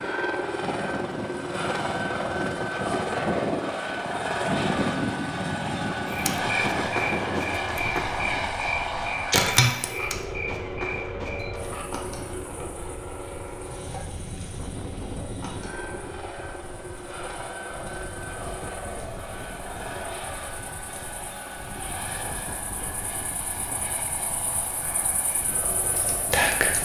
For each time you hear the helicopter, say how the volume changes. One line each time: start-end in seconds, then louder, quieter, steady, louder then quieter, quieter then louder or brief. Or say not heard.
0.0-26.8 quieter.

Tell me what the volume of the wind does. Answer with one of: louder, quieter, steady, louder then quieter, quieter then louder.
quieter.